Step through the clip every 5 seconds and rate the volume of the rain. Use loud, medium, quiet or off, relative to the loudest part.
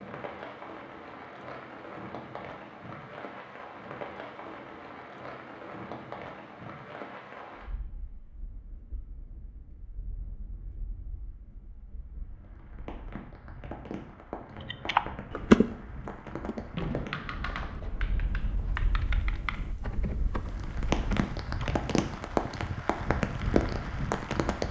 medium, quiet, quiet, medium, loud.